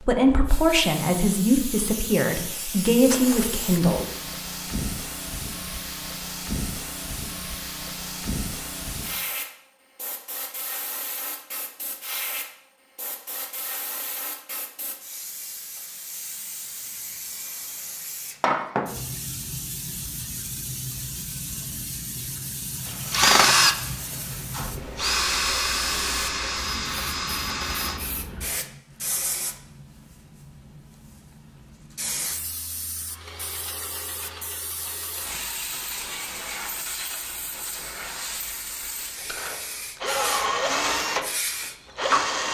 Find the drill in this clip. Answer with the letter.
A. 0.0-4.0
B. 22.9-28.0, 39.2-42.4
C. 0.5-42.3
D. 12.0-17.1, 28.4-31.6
B.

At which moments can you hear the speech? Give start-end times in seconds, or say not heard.
0.0-4.0.